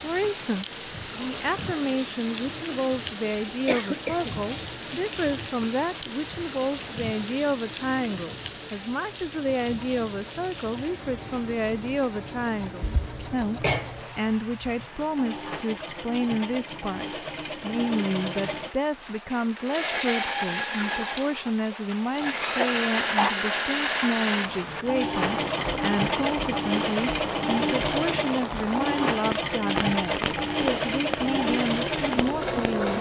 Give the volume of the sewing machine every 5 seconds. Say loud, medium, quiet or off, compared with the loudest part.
quiet, quiet, quiet, medium, loud, loud, loud.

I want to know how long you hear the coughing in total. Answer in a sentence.
The coughing can be heard for 3 seconds in total.